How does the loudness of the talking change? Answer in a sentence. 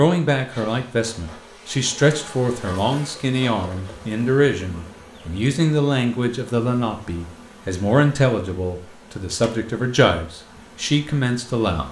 The loudness of the talking stays about the same.